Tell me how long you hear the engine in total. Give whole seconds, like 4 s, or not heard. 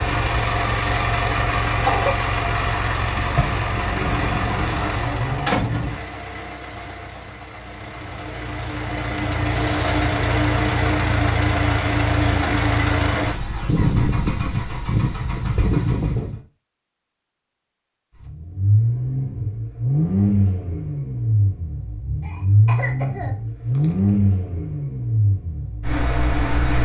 25 s.